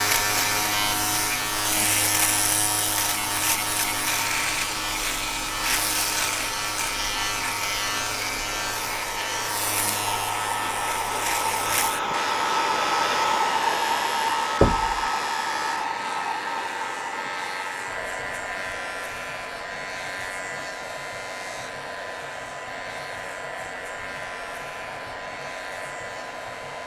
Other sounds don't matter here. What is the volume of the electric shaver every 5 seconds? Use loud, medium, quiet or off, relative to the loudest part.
loud, loud, medium, medium, quiet, quiet.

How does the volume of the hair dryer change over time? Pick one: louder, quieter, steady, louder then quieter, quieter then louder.
louder then quieter.